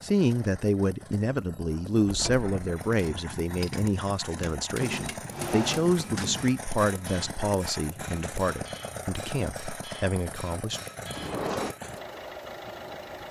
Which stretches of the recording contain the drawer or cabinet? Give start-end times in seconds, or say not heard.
2.0-2.5, 4.8-6.5, 11.1-11.8.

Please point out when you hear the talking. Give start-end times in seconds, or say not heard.
0.0-10.8.